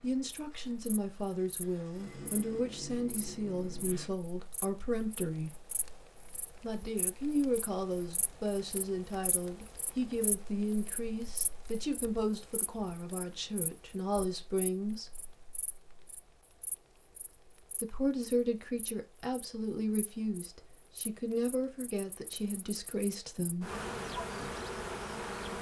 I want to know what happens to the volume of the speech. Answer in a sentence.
The loudness of the speech stays about the same.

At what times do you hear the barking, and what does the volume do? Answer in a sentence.
You can't hear the barking here.